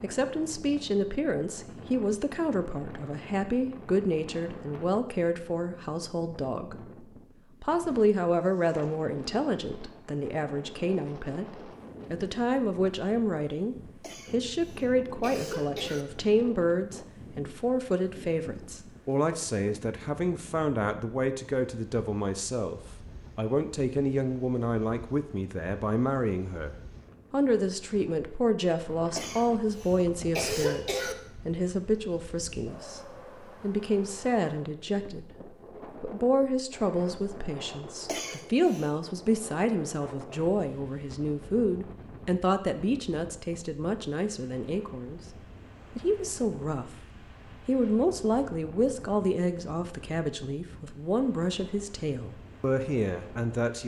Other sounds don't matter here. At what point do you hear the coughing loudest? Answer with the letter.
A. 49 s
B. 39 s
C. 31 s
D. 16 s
C.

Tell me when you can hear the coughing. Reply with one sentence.
The coughing can be heard from 14.0 to 16.1 s, from 29.1 to 31.1 s and from 38.0 to 39.0 s.